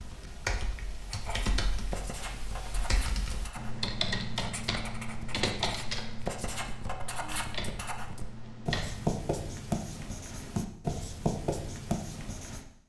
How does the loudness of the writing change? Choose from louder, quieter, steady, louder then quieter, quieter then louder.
louder.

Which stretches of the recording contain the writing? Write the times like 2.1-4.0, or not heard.
1.1-12.7.